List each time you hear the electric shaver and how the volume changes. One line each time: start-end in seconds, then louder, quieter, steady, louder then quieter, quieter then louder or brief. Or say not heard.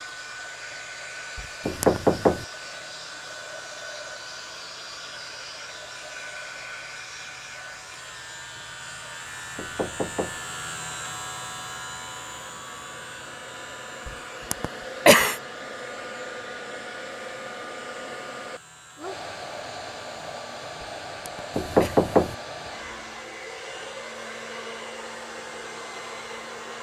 0.0-26.7 louder then quieter.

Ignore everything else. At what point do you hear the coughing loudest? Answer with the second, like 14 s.
15 s.